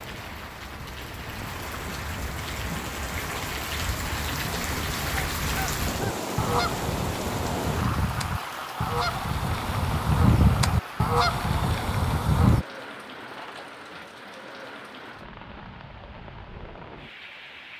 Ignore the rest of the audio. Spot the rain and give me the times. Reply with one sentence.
You can hear the rain from 0.0 to 17.7 s.